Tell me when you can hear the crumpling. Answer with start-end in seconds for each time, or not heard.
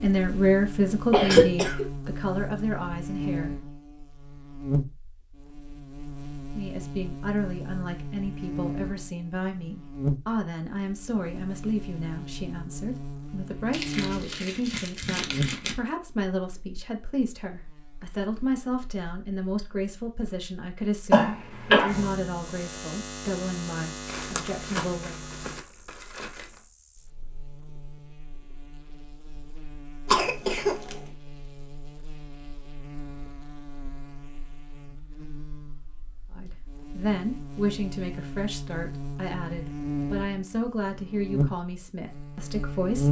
13.7-15.8, 24.1-26.6.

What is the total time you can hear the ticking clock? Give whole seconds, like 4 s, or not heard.
not heard.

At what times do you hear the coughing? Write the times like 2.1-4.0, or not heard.
1.1-1.9, 21.1-22.1, 30.1-30.9.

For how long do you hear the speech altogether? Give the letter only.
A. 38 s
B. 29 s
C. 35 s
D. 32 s
B.